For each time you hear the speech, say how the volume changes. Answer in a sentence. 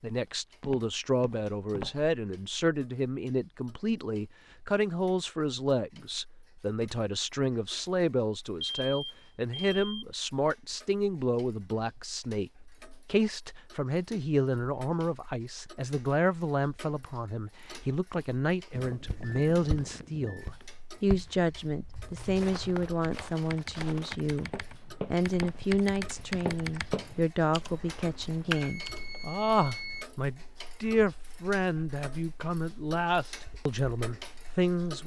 The speech can be heard from 0.0 to 35.0 s, at a steady volume.